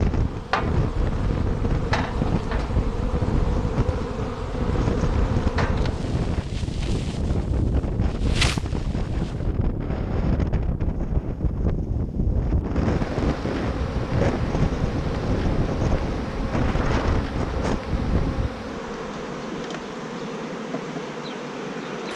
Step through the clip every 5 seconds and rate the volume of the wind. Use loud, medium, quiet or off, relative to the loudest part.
loud, loud, loud, loud, off.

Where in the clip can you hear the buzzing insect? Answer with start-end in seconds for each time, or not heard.
0.0-9.4, 12.8-22.1.